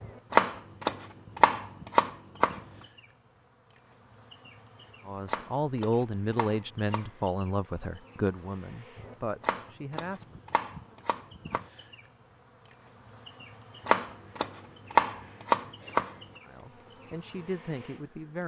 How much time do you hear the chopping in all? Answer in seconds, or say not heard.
9 s.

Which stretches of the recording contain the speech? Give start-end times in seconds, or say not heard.
5.0-10.3, 16.4-18.4.